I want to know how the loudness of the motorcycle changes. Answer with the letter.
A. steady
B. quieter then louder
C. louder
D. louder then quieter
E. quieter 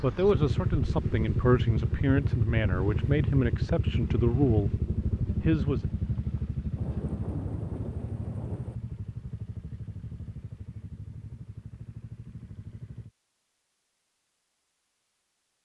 E.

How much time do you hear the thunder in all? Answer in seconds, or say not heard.
2 s.